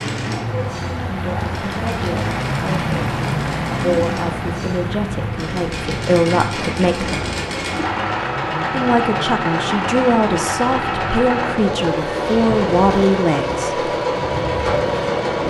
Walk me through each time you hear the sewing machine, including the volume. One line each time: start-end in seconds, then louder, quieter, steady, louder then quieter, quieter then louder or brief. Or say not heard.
0.0-15.4 louder.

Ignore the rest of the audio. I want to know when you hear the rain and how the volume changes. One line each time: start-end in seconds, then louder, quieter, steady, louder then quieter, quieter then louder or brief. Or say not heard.
0.0-15.4 quieter.